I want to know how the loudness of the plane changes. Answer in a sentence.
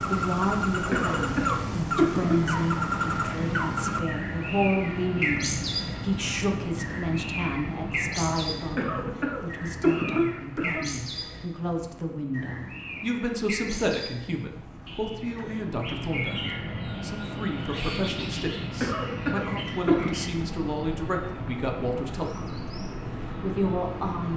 The volume of the plane goes down, then up.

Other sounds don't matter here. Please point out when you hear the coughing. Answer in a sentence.
You can hear the coughing from 0.9 to 2.5 s, from 8.8 to 10.9 s and from 18.8 to 20.1 s.